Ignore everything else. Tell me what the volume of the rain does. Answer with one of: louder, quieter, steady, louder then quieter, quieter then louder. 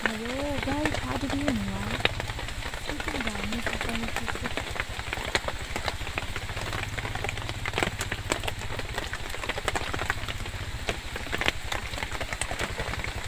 steady.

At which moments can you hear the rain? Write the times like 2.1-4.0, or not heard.
0.0-13.2.